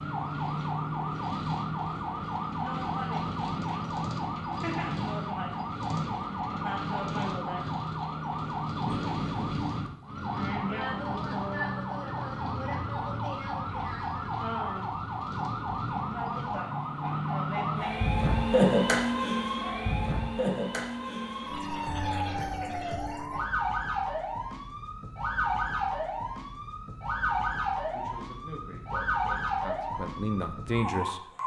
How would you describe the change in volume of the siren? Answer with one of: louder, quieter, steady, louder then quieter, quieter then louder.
steady.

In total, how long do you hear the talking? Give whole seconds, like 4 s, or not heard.
3 s.